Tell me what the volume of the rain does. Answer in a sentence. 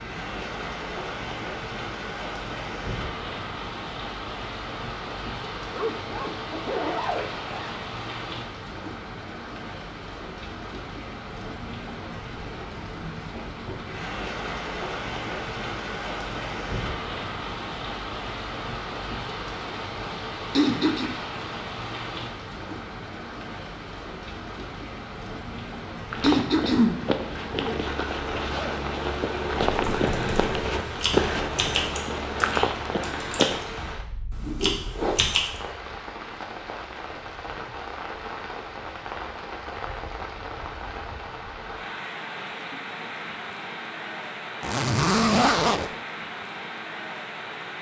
The loudness of the rain stays about the same.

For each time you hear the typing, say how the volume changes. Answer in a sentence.
The typing can be heard from 29.7 to 35.5 s, getting quieter then louder.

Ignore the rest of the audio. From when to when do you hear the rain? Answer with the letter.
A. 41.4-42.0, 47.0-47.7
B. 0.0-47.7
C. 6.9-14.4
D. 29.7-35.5
B.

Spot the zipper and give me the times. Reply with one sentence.
The zipper can be heard from 5.7 to 7.8 s, from 27.4 to 28.8 s and from 44.6 to 45.9 s.